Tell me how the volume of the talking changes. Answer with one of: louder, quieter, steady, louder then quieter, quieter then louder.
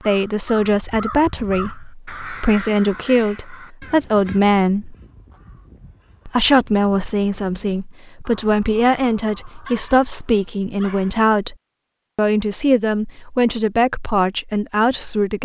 steady.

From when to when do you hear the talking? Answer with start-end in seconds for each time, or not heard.
0.1-5.0, 6.2-11.6, 12.2-15.4.